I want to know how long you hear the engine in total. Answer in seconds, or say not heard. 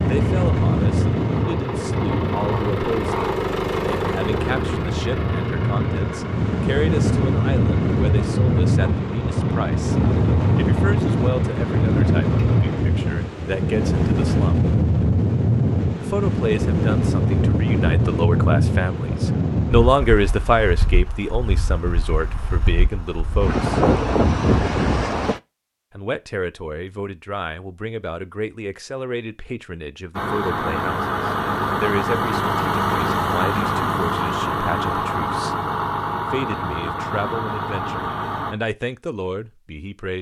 21 s.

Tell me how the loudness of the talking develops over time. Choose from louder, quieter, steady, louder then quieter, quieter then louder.
louder then quieter.